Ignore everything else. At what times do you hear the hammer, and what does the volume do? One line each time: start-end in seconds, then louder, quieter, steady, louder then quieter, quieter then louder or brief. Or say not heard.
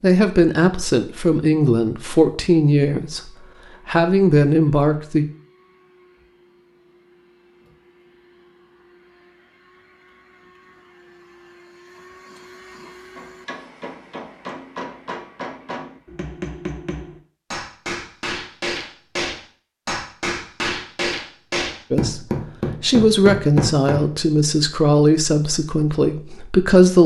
13.2-24.1 louder.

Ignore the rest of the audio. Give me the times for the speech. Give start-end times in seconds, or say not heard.
0.0-5.2, 21.9-27.0.